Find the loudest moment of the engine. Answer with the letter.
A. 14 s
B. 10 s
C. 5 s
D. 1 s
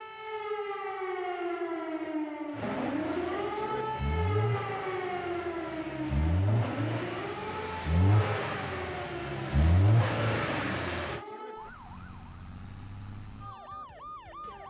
B.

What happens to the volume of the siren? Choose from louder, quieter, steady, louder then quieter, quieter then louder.
quieter.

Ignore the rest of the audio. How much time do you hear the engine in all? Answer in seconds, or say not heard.
9 s.